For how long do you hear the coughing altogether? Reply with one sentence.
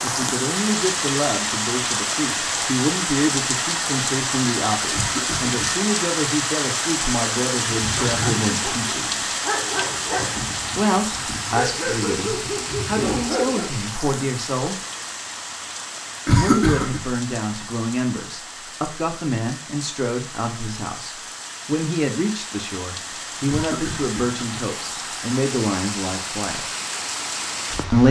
The coughing can be heard for 3 seconds in total.